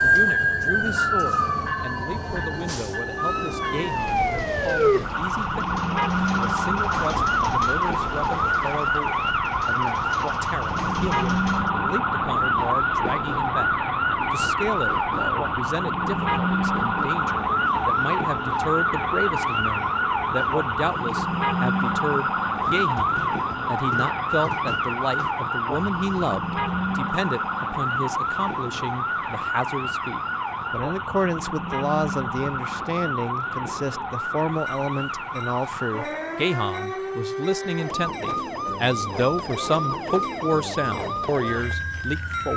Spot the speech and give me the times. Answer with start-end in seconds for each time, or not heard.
0.0-42.5.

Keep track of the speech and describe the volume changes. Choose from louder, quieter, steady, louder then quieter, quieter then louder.
louder.